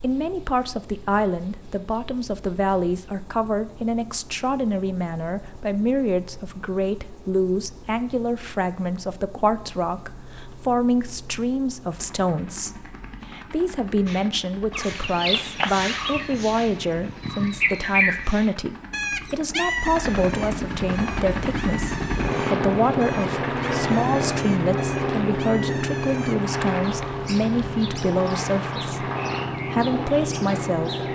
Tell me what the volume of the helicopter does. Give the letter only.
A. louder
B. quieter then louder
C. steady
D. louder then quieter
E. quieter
A.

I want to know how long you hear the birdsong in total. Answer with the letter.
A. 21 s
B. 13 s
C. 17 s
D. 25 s
C.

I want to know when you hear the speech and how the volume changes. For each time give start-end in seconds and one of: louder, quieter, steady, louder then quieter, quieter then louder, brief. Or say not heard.
0.0-29.1 steady
29.7-31.1 brief.